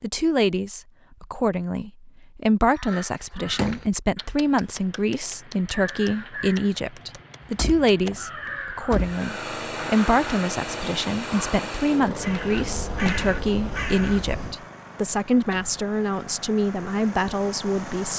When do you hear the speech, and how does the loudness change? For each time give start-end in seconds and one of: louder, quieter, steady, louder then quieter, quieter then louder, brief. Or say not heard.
0.0-18.1 steady.